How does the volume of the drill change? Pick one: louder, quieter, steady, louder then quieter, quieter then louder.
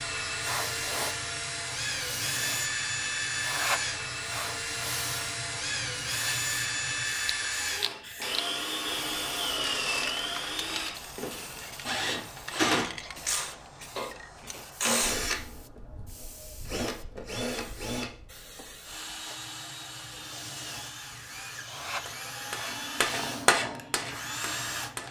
quieter.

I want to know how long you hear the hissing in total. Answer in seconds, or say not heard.
25 s.